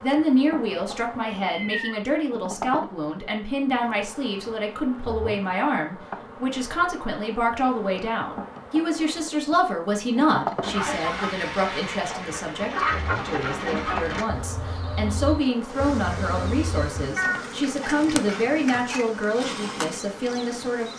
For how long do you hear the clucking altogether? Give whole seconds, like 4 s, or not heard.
6 s.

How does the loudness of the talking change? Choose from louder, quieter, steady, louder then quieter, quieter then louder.
steady.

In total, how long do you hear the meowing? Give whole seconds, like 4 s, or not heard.
2 s.